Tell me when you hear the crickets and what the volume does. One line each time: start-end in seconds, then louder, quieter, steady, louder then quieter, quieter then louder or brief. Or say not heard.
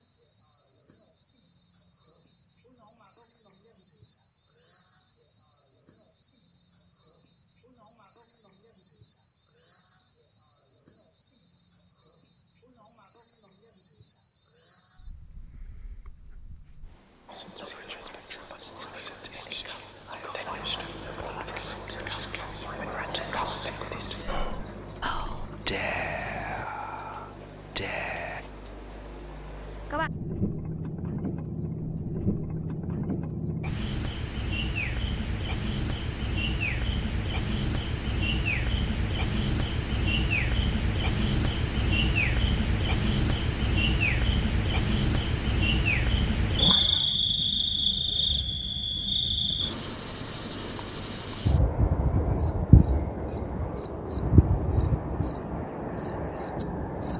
0.0-57.1 louder.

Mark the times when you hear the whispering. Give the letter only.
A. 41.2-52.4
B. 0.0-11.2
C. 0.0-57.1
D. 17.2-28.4
D.